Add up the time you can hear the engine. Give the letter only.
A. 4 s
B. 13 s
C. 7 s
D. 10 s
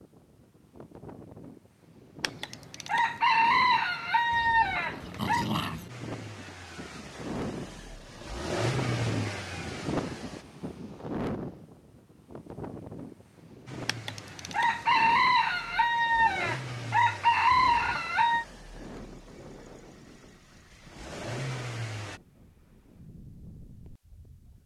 B.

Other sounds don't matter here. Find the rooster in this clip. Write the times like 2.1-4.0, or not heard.
2.2-5.5, 13.8-18.4.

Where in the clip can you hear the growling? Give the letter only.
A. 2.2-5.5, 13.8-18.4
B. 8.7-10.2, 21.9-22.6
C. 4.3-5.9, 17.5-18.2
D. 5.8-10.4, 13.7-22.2
C.